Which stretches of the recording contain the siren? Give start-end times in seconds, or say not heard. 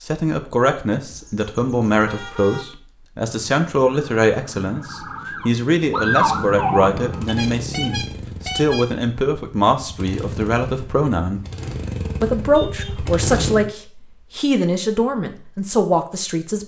3.2-7.5.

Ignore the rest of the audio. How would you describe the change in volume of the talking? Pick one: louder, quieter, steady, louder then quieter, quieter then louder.
steady.